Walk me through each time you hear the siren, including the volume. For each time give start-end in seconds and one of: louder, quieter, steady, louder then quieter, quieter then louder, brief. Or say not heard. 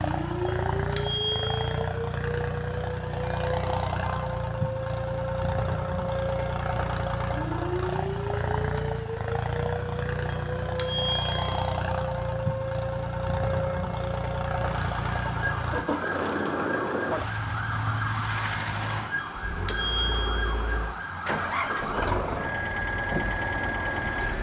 0.0-24.3 steady.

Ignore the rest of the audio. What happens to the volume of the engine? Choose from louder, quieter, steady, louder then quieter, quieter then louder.
steady.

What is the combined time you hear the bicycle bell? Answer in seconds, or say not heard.
4 s.